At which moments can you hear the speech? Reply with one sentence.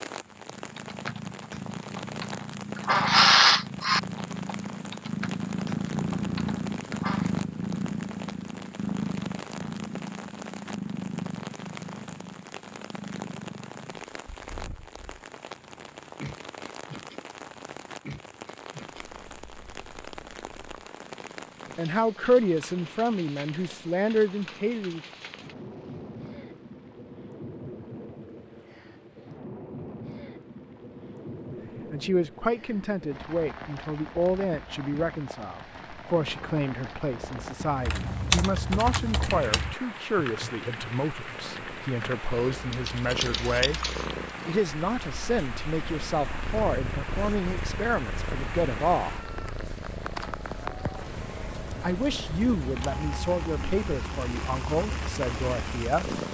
You can hear the speech from 21.8 to 25.1 s, from 31.9 to 43.8 s, from 44.5 to 49.3 s and from 51.8 to 56.2 s.